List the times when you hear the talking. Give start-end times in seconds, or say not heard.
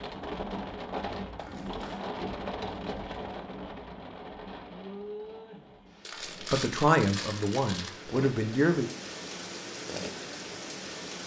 6.4-8.9.